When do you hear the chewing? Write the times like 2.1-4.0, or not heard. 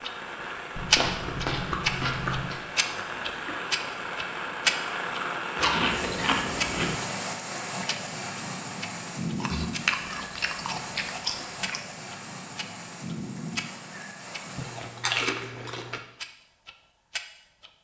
0.8-2.6, 5.5-7.0, 9.4-11.8, 14.6-16.0.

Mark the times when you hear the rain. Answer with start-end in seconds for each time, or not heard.
0.0-15.1.